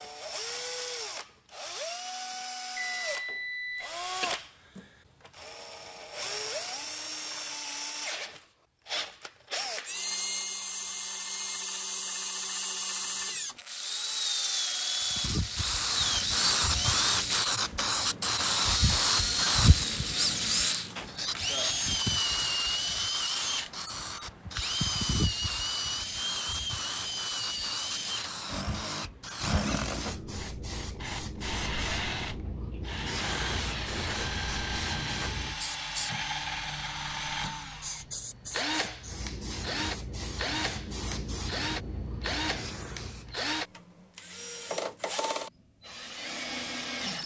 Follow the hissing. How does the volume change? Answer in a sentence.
The loudness of the hissing goes down.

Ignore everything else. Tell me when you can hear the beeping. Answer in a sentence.
The beeping can be heard from 2.8 to 4.3 s.